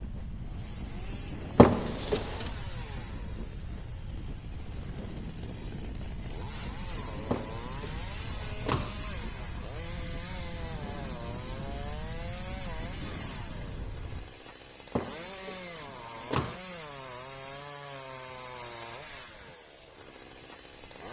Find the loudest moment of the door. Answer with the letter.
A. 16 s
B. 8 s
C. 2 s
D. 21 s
C.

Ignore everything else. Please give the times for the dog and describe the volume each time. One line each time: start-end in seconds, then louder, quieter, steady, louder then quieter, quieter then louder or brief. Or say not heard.
not heard.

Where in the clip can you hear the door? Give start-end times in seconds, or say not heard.
1.6-2.5, 7.3-8.9, 14.9-16.6.